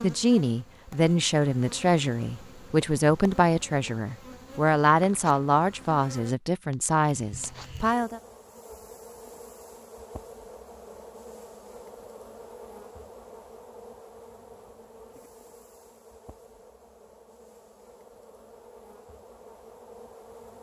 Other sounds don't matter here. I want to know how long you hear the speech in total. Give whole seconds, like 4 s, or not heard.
8 s.